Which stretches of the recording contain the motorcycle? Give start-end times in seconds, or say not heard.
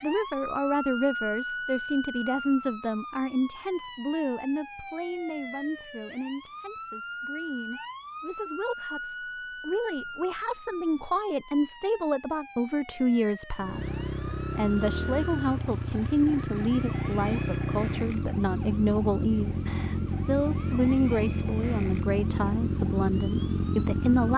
13.6-24.3.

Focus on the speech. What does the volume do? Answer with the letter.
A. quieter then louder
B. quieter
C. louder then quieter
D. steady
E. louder
A.